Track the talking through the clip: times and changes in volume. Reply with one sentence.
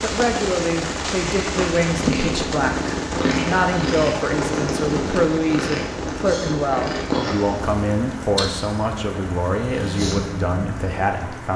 The talking can be heard from 0.0 to 11.5 s, at a steady volume.